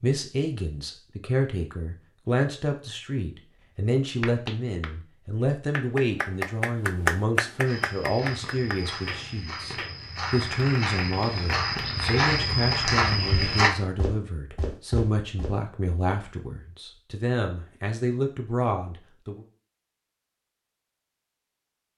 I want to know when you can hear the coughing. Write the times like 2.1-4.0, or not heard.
not heard.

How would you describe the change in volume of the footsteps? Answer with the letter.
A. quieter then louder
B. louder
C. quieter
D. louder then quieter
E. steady
D.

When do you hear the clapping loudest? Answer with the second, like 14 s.
7 s.